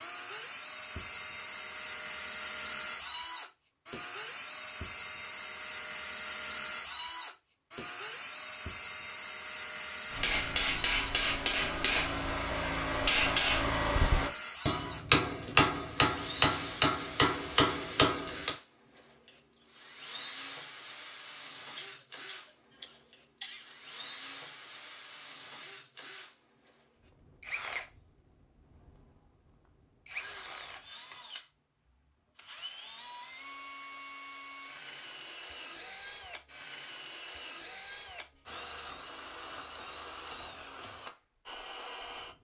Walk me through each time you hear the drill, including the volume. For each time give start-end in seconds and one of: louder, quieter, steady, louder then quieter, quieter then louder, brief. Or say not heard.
0.0-42.3 quieter.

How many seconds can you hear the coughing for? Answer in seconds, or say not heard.
2 s.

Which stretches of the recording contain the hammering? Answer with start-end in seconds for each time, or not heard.
10.1-18.5.